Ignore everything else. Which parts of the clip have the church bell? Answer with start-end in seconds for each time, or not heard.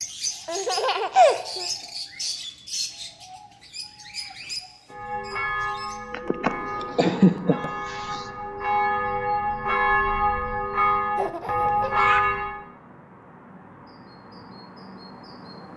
4.9-12.6.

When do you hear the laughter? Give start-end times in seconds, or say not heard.
0.5-1.6, 6.1-8.2, 11.2-12.2.